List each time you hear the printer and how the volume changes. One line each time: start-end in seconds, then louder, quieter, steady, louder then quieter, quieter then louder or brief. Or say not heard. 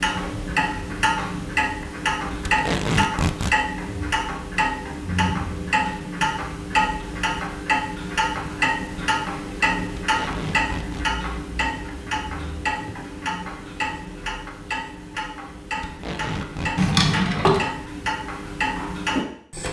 not heard.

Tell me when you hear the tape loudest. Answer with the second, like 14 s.
3 s.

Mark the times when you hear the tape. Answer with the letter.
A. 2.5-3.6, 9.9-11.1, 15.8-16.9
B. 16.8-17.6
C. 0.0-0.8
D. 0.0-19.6
A.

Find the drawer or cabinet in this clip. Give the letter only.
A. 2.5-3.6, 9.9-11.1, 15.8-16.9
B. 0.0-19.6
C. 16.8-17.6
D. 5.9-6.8
C.